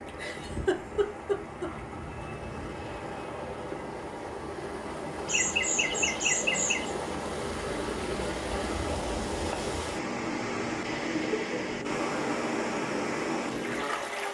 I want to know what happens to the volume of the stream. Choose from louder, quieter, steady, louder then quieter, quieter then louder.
louder.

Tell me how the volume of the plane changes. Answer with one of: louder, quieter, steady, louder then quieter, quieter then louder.
louder.